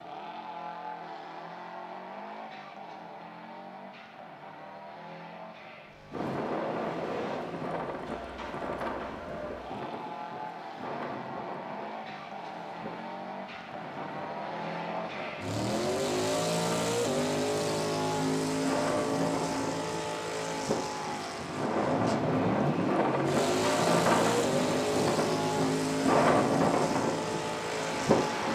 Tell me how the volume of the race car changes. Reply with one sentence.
The loudness of the race car goes up.